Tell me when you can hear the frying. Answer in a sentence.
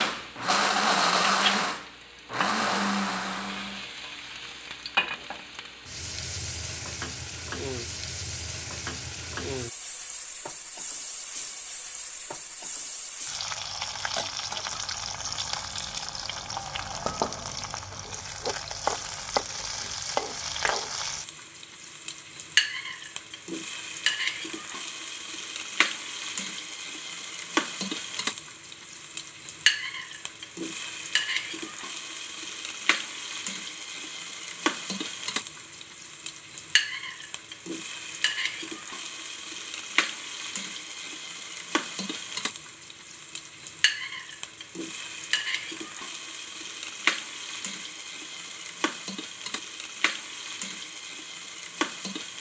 You can hear the frying from 0.0 to 52.3 s.